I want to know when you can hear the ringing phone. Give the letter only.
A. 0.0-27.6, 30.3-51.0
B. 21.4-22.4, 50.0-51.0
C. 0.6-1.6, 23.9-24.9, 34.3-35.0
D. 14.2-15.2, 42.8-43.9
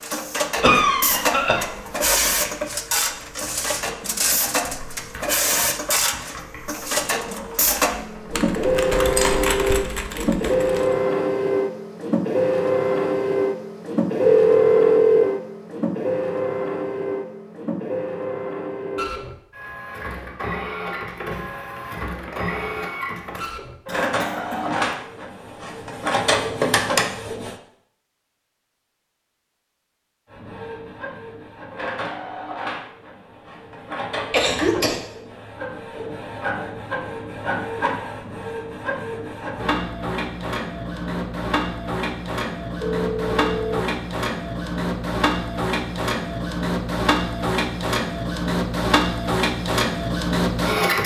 D.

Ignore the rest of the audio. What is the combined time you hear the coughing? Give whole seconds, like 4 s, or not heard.
3 s.